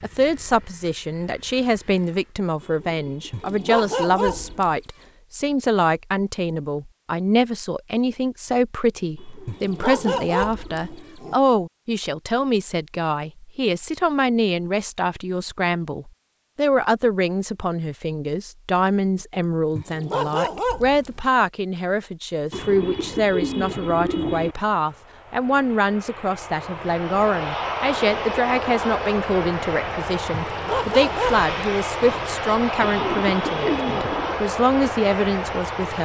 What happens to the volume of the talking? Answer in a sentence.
The volume of the talking stays about the same.